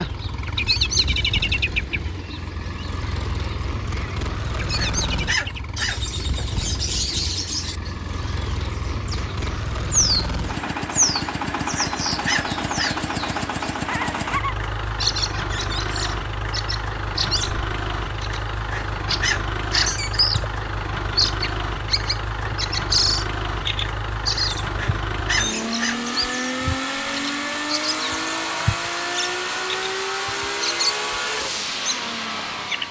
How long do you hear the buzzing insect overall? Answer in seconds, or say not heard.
not heard.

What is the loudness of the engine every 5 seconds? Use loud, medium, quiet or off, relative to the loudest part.
medium, medium, loud, loud, loud, loud, loud.